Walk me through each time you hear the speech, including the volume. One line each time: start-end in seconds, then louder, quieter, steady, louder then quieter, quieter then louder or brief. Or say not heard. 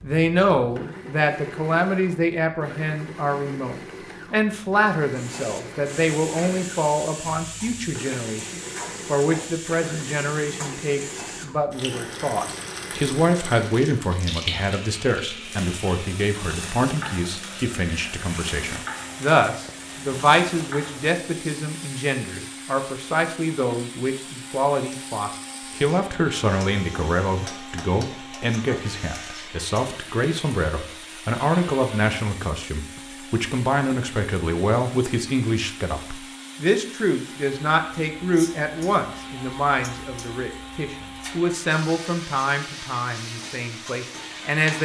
0.0-44.8 steady.